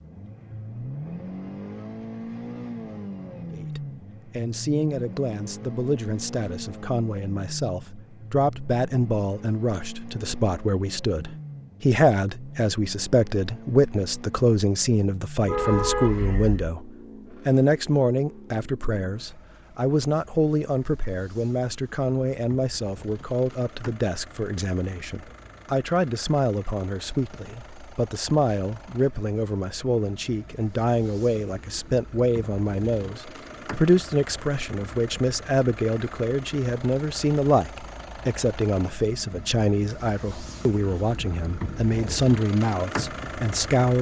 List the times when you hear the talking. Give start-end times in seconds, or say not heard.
3.5-43.9.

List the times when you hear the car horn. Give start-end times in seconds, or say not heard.
15.4-16.8.